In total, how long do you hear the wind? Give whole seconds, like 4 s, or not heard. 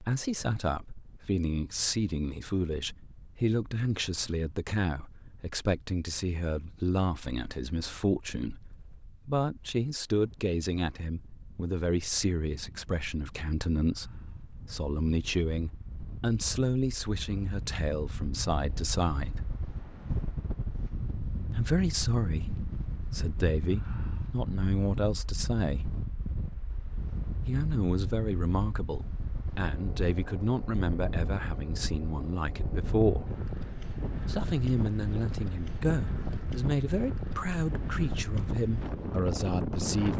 40 s.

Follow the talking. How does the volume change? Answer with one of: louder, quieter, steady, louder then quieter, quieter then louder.
steady.